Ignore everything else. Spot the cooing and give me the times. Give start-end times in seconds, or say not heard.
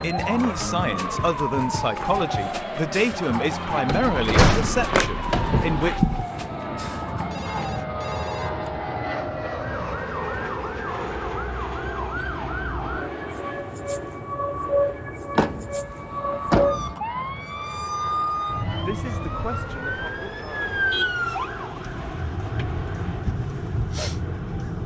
not heard.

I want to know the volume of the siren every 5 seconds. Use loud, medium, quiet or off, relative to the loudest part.
loud, medium, loud, loud, loud.